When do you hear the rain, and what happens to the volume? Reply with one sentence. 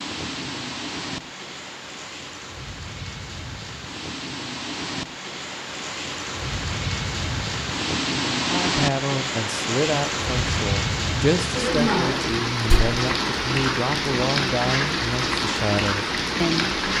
The rain can be heard from 0.0 to 16.9 s, getting louder.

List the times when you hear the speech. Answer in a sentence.
The speech can be heard from 8.3 to 16.7 s.